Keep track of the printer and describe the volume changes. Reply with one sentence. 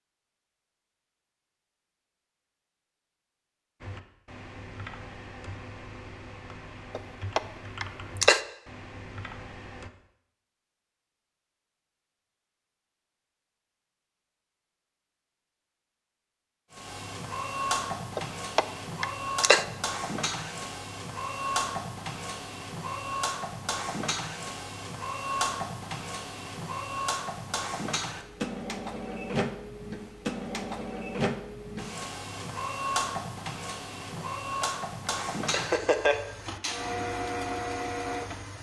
The loudness of the printer stays about the same.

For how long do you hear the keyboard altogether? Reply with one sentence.
The keyboard can be heard for 6 seconds in total.